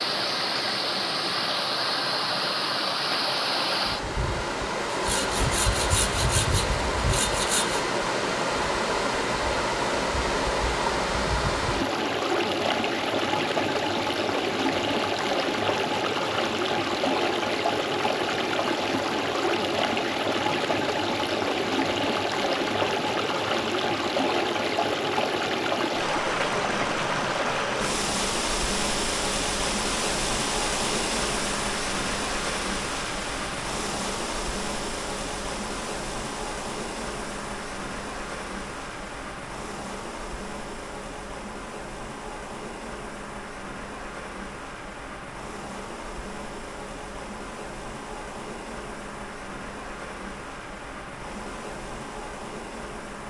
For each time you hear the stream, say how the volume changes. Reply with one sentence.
The stream can be heard from 0.0 to 53.2 s, getting quieter.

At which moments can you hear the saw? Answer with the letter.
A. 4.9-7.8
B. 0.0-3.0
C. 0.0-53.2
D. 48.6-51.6
A.